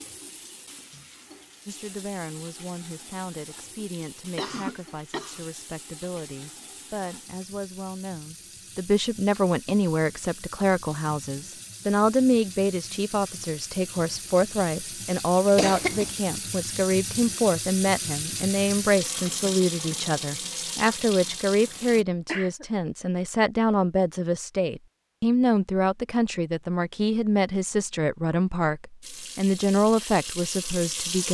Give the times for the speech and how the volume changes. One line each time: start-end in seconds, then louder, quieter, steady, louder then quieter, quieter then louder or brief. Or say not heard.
1.6-31.2 louder.